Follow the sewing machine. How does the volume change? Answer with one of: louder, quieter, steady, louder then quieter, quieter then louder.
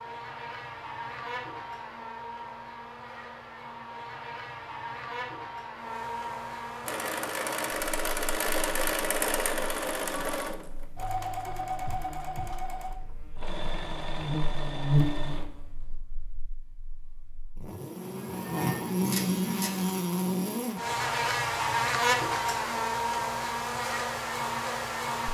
quieter.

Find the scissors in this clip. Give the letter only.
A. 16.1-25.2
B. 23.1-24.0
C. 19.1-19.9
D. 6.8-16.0
C.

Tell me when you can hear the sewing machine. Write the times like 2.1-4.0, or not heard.
6.8-16.0.